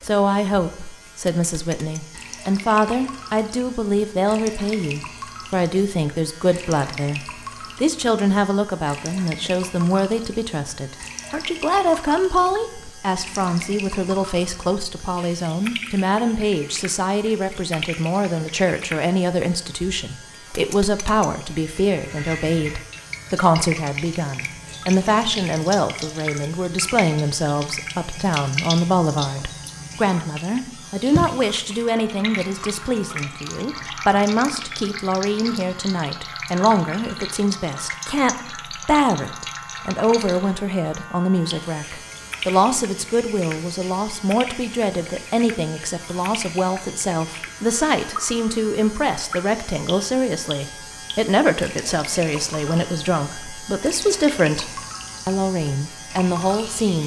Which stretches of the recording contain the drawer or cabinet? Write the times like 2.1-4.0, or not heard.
not heard.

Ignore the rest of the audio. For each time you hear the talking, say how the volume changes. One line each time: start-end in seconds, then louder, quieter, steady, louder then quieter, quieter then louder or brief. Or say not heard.
0.0-57.0 steady.